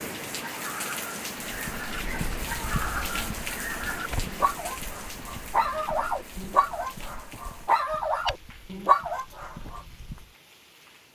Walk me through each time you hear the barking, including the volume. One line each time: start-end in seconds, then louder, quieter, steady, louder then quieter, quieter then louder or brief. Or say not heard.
0.4-9.8 louder.